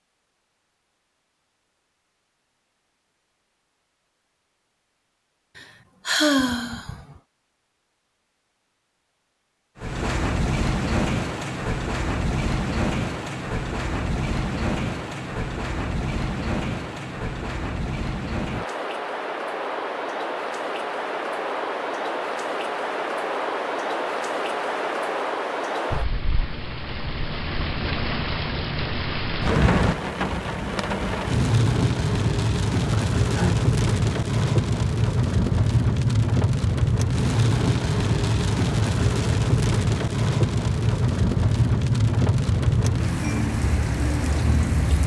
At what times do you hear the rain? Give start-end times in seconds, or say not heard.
9.8-45.0.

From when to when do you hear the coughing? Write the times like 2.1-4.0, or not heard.
not heard.